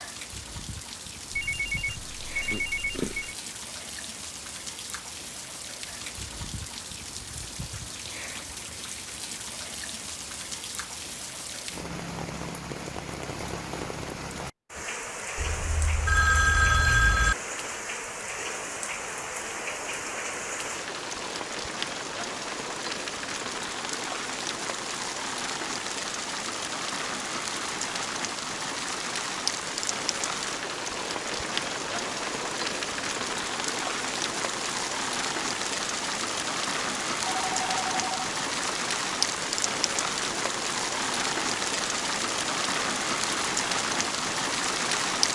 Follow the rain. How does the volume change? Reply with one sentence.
The volume of the rain goes up.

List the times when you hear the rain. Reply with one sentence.
The rain can be heard from 0.0 to 45.3 s.